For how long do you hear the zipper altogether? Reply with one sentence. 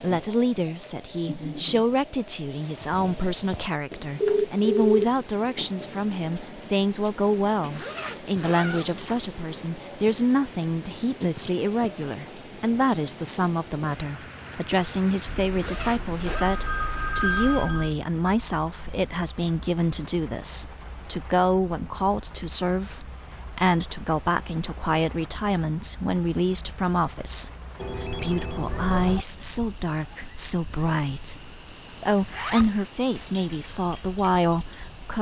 The zipper can be heard for 3 seconds in total.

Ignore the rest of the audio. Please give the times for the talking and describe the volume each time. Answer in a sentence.
You can hear the talking from 0.0 to 35.1 s, at a steady volume.